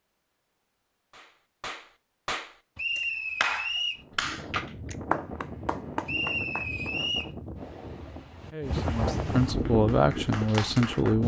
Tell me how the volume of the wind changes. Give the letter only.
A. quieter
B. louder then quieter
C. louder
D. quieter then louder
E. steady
C.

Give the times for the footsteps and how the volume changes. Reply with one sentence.
The footsteps can't be heard in this clip.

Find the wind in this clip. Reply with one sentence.
The wind can be heard from 4.0 to 11.2 s.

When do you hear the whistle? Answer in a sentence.
You can hear the whistle from 2.8 to 4.0 s and from 6.0 to 7.3 s.